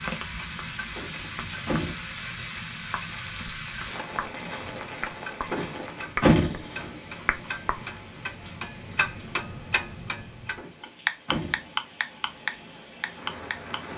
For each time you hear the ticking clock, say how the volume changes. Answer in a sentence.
The ticking clock can be heard from 0.0 to 13.9 s, getting louder.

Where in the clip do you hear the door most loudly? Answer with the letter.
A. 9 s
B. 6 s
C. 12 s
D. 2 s
B.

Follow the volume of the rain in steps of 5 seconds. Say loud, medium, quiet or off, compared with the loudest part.
loud, medium, medium.